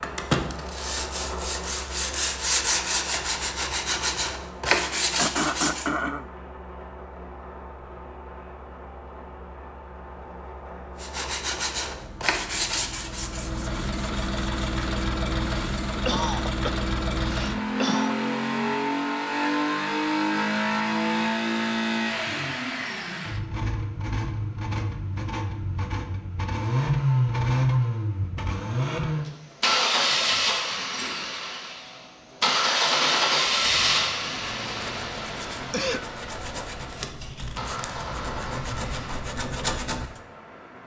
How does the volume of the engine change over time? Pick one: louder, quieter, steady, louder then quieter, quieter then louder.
louder.